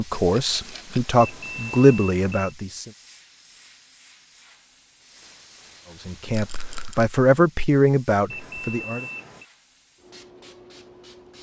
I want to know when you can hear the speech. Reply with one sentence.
You can hear the speech from 0.0 to 2.9 s and from 6.0 to 9.1 s.